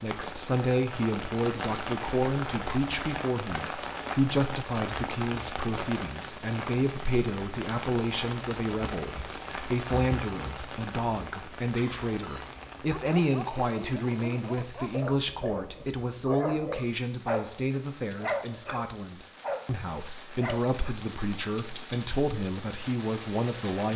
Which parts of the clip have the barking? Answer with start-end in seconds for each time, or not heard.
11.8-20.9.